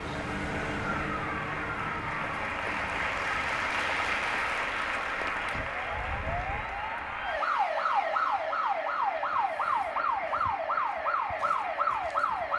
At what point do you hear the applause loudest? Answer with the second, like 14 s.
4 s.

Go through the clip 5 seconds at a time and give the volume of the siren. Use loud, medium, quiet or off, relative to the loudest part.
medium, loud, loud.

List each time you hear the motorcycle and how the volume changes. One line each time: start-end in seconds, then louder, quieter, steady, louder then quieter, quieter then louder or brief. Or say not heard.
not heard.